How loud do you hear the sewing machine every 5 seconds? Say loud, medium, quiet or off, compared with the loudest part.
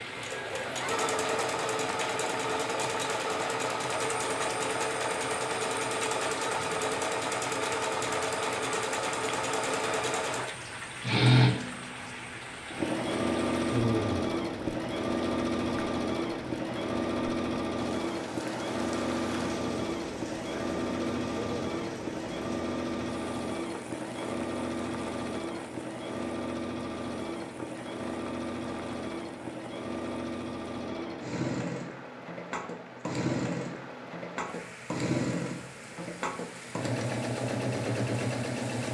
loud, loud, loud, loud, medium, medium, medium, loud.